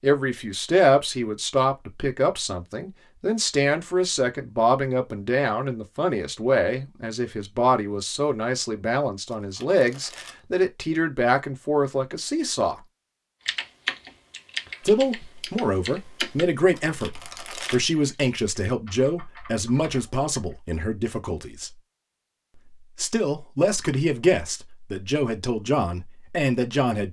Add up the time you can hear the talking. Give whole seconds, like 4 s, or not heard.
24 s.